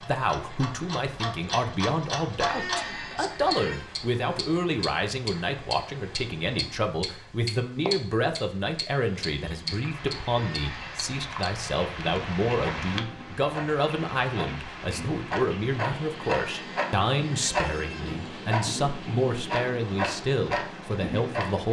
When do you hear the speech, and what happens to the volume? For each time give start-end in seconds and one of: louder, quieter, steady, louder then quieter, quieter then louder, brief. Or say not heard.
0.0-21.6 steady.